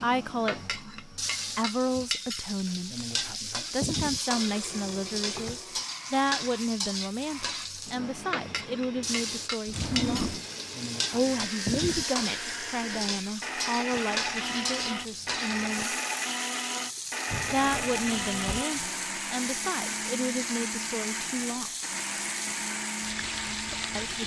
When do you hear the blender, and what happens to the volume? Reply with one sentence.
You can hear the blender from 4.0 to 24.2 s, getting louder.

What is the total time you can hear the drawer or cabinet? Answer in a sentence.
You can hear the drawer or cabinet for 3 seconds altogether.